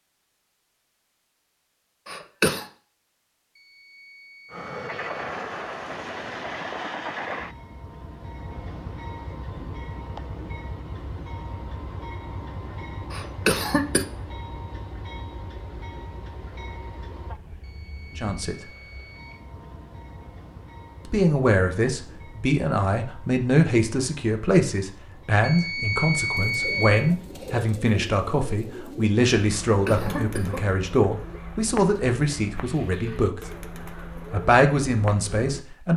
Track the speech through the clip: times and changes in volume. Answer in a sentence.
You can hear the speech briefly from 18.1 to 18.6 s; from 21.1 to 33.5 s, at a steady volume; and briefly from 34.3 to 35.9 s.